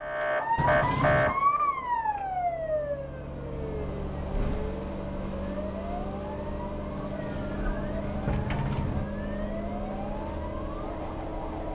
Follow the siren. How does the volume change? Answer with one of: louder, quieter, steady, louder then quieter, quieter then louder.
quieter.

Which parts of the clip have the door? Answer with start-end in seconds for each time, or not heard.
0.6-1.4, 7.0-9.1.